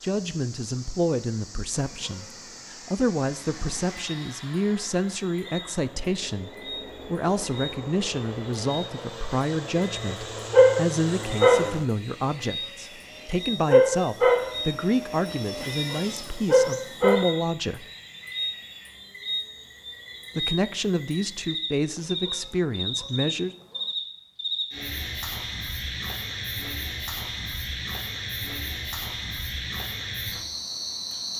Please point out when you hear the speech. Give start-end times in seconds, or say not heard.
0.0-17.9, 20.4-23.6.